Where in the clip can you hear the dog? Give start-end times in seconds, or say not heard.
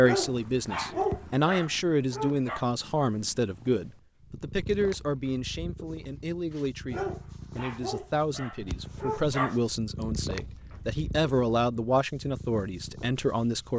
0.0-2.6, 6.5-9.6.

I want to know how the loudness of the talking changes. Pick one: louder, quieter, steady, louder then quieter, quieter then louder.
quieter then louder.